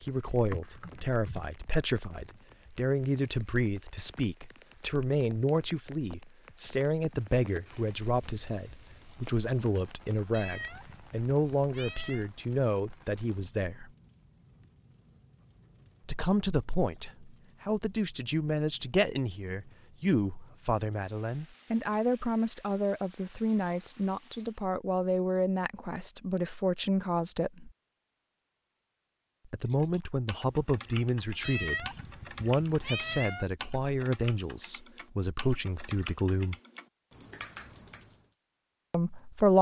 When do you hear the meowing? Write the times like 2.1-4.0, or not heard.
10.3-12.3, 31.4-33.5.